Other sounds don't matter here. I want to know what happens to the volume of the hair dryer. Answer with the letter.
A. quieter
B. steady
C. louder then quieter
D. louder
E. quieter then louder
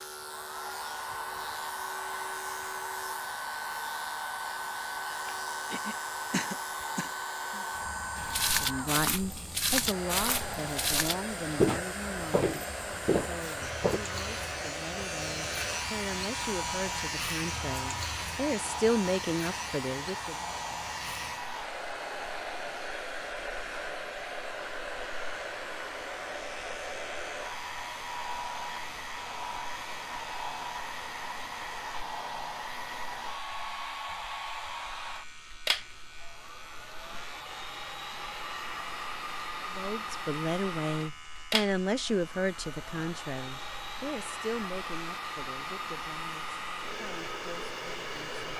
B.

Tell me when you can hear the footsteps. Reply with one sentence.
The footsteps can be heard from 8.2 to 14.0 s.